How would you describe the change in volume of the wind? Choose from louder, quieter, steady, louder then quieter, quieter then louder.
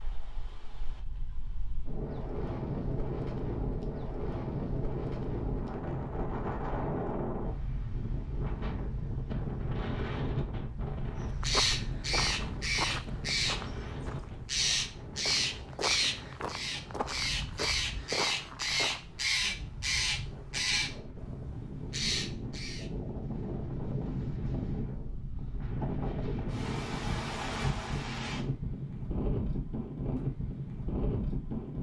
quieter then louder.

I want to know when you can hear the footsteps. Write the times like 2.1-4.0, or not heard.
11.2-19.0.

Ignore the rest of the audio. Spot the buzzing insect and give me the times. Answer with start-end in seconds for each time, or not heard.
not heard.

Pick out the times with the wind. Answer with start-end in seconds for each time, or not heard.
0.0-31.7.